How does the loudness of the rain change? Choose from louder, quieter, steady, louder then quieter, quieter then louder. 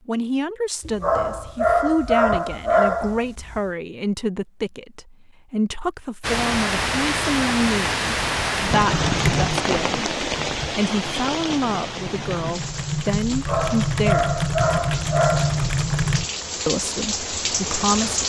quieter then louder.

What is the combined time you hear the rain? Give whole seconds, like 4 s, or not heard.
12 s.